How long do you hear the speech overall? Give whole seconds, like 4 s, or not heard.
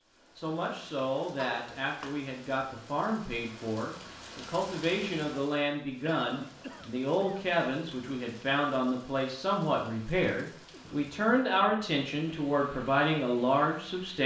14 s.